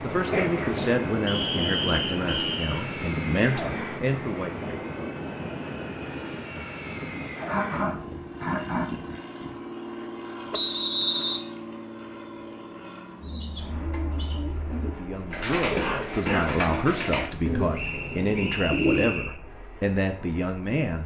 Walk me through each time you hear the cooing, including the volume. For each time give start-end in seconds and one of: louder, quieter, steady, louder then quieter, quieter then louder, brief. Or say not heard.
13.2-19.1 louder then quieter.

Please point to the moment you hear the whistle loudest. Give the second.
11 s.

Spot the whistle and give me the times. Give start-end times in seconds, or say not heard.
1.2-2.6, 10.5-11.4, 17.8-19.4.